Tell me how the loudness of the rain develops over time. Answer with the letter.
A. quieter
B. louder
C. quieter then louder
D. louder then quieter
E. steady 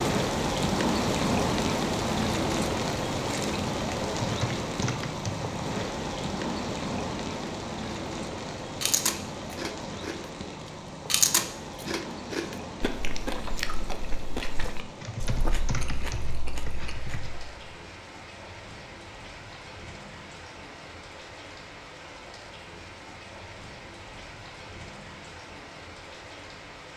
A.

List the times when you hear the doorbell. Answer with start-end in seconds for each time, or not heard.
not heard.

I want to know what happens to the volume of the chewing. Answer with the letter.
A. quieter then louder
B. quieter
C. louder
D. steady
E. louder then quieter
E.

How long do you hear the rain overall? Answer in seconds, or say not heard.
27 s.